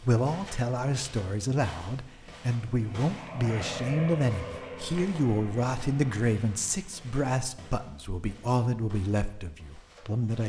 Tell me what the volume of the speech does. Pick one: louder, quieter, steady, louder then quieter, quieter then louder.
steady.